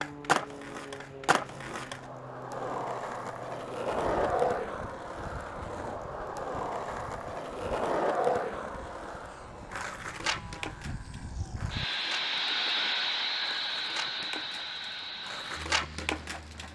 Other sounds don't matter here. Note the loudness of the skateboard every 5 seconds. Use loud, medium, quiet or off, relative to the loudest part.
loud, loud, medium, loud.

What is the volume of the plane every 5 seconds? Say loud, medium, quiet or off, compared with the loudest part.
quiet, quiet, loud, medium.